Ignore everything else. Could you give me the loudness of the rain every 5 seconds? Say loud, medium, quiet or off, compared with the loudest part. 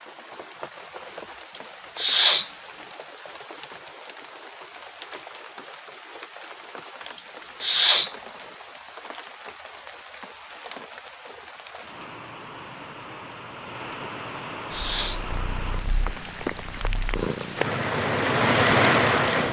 quiet, quiet, quiet, loud.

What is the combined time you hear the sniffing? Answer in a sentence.
You can hear the sniffing for 4 seconds altogether.